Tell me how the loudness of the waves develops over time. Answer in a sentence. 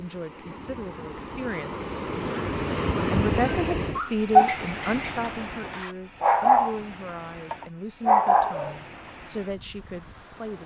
The loudness of the waves goes up, then down.